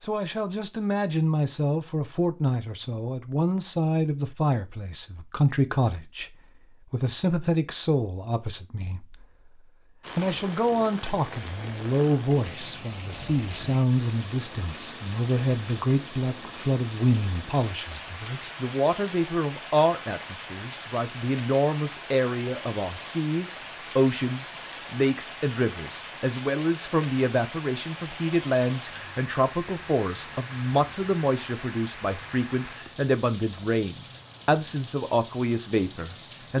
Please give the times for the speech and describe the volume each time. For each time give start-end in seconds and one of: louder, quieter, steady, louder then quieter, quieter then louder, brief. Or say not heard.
0.0-36.5 steady.